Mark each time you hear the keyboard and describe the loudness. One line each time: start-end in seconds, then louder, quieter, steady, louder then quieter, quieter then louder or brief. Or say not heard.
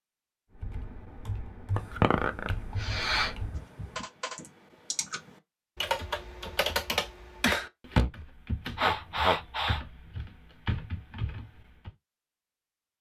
0.6-11.9 louder then quieter.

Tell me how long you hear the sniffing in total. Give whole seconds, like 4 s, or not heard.
3 s.